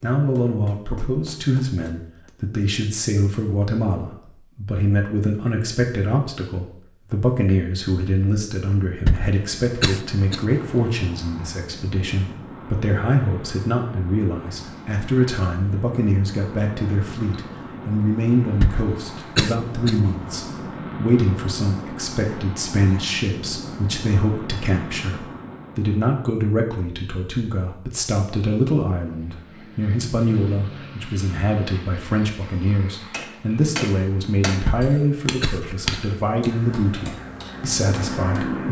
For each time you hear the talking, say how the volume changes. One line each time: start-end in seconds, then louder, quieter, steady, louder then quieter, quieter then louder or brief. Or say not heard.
0.0-38.6 steady.